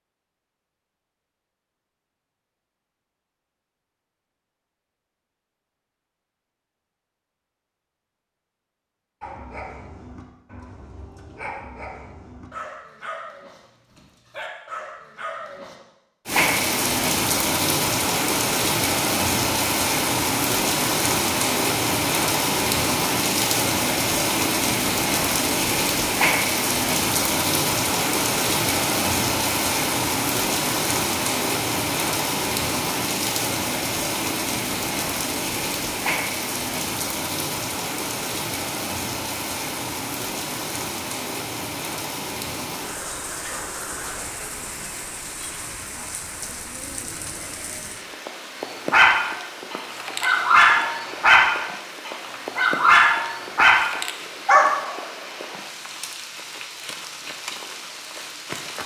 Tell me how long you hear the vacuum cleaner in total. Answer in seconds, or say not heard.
not heard.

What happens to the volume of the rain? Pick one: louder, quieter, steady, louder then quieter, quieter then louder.
quieter.